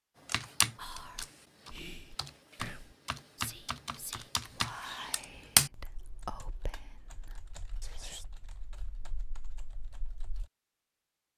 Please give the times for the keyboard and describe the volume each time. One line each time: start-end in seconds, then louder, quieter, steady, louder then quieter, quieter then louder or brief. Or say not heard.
0.2-10.4 louder then quieter.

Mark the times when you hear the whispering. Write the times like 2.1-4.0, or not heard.
0.8-8.2.